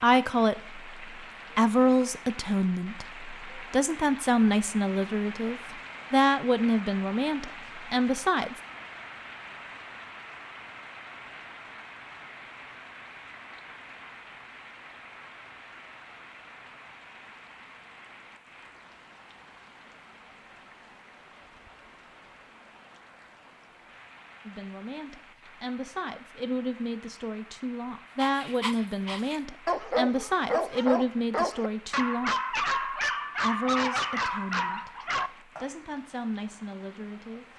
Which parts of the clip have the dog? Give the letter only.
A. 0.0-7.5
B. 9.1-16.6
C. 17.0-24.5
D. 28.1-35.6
D.